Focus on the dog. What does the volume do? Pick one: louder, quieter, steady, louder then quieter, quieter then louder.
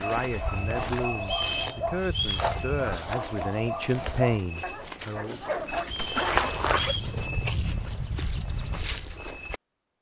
steady.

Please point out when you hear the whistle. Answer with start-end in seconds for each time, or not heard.
1.2-2.4, 5.8-7.2.